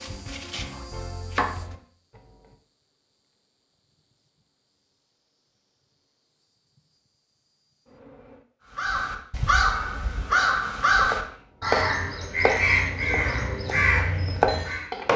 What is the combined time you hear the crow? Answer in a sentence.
The crow can be heard for 6 seconds in total.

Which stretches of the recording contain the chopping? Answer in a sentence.
You can hear the chopping from 0.0 to 1.8 s and from 10.3 to 15.1 s.